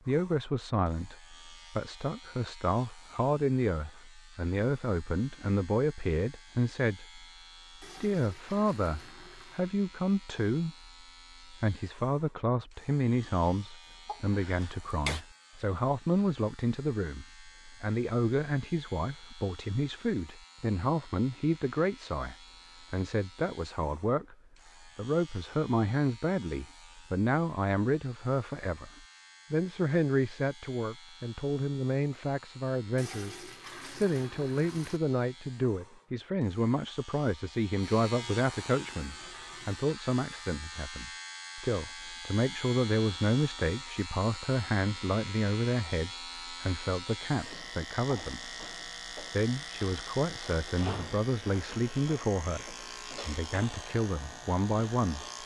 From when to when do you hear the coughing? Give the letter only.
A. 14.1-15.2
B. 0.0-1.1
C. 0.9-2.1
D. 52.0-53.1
A.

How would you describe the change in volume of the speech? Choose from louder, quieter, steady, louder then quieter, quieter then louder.
steady.